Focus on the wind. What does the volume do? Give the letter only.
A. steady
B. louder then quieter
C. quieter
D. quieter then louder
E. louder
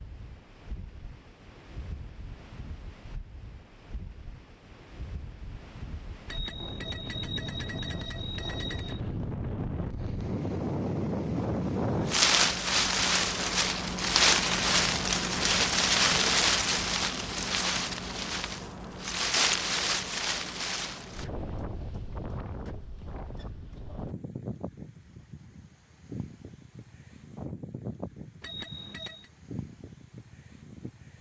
B.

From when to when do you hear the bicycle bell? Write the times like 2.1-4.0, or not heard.
6.2-9.0, 28.4-29.3.